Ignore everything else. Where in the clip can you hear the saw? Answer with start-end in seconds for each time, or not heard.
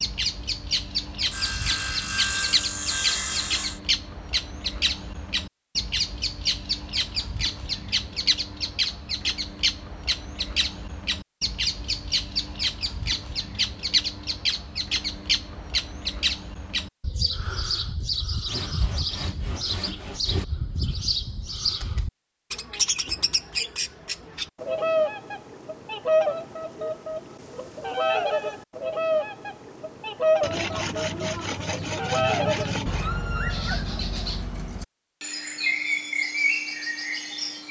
1.3-3.8, 18.4-20.4, 30.4-33.0.